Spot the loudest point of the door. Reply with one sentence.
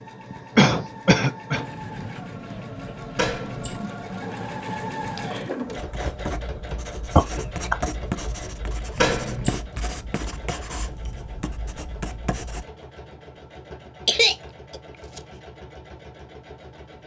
The volume of the door peaks at 9 seconds.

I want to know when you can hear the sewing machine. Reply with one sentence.
The sewing machine can be heard from 0.0 to 17.0 s.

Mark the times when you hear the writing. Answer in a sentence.
The writing can be heard from 1.6 to 12.7 s.